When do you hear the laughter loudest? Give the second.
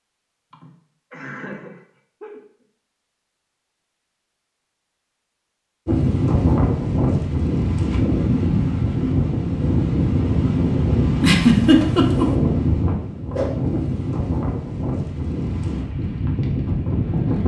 12 s.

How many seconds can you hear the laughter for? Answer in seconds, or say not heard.
3 s.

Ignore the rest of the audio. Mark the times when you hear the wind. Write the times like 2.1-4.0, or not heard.
5.8-17.4.